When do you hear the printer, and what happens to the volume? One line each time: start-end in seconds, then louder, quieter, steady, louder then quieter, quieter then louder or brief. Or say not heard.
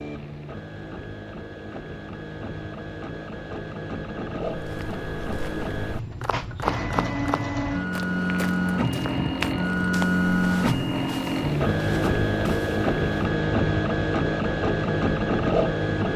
0.0-16.1 louder.